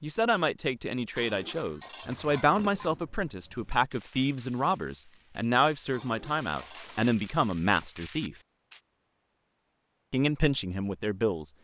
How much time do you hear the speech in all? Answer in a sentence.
You can hear the speech for 10 seconds altogether.